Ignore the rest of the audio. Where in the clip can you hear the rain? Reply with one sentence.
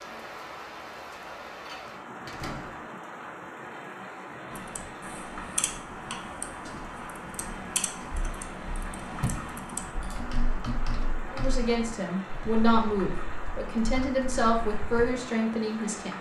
The rain can be heard from 0.0 to 16.1 s.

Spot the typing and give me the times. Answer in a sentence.
The typing can be heard from 4.5 to 15.1 s.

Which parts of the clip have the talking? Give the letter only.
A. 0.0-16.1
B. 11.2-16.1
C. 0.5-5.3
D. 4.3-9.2
B.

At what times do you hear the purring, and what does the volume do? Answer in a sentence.
The purring can't be heard in this clip.